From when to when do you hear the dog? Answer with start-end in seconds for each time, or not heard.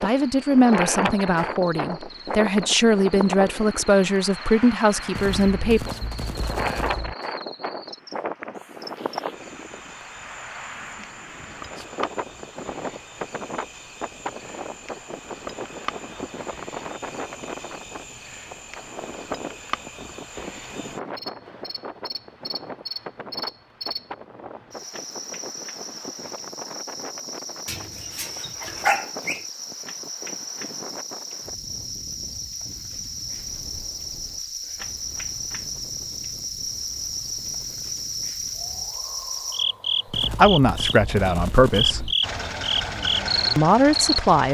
27.6-29.4.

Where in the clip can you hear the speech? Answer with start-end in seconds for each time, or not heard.
0.0-5.9, 40.3-42.1, 43.5-44.5.